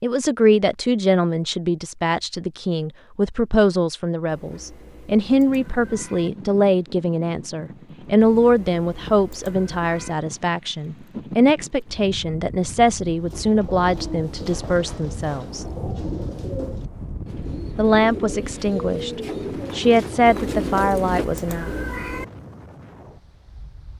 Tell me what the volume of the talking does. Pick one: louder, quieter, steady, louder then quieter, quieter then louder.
steady.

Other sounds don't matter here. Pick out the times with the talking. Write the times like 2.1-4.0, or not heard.
0.0-15.7, 17.8-21.7.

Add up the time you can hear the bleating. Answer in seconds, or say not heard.
not heard.